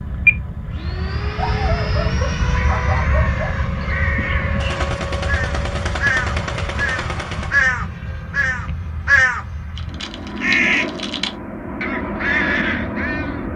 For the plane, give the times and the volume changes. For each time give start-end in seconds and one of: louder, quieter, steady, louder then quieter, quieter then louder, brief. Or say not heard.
0.0-13.5 quieter then louder.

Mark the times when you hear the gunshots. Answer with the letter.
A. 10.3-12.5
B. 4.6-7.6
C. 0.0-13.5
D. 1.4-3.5
B.